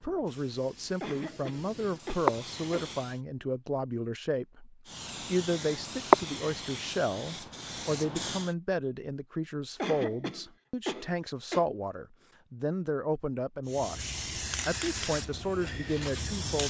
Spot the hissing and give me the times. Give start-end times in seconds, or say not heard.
0.0-3.2, 4.8-8.6, 13.7-16.6.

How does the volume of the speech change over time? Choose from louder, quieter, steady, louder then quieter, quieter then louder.
steady.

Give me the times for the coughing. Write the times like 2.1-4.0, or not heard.
1.0-2.9, 9.8-11.7.